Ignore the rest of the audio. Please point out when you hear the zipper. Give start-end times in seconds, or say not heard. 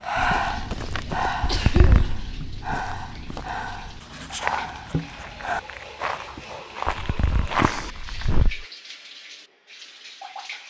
1.4-2.2, 6.8-8.7.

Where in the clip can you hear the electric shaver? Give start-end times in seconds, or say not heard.
not heard.